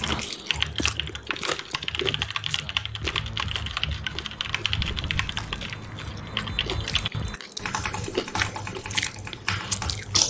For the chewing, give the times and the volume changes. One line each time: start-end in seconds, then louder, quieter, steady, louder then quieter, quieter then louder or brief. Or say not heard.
0.0-10.2 quieter then louder.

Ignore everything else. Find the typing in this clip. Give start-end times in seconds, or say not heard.
0.0-10.2.